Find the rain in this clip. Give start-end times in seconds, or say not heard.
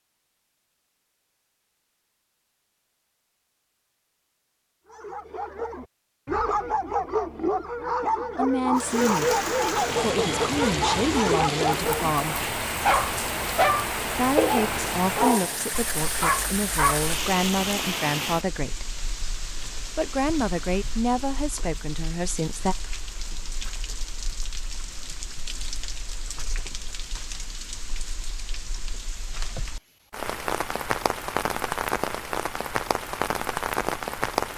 8.8-34.5.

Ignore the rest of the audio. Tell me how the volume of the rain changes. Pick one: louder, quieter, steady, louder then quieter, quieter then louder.
quieter then louder.